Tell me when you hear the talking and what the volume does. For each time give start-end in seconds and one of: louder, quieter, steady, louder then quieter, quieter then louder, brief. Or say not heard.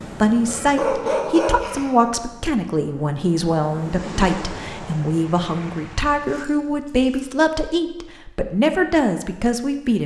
0.2-10.0 steady.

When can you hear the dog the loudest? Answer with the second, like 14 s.
1 s.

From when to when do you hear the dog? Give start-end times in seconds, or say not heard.
0.5-2.1, 6.2-7.3.